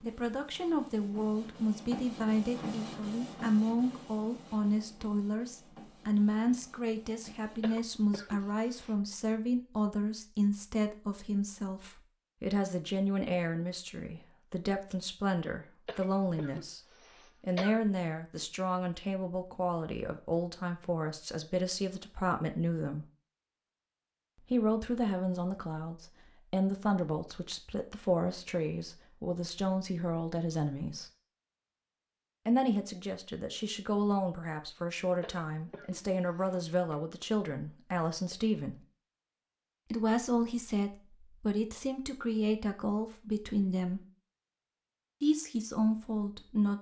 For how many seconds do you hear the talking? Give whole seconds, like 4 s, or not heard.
41 s.